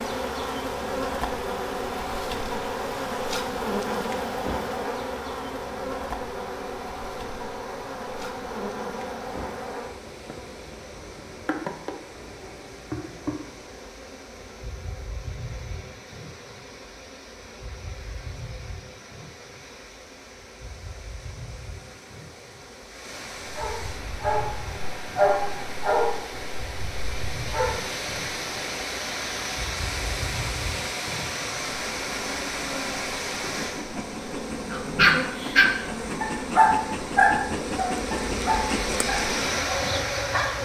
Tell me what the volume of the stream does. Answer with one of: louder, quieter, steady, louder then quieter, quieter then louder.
louder.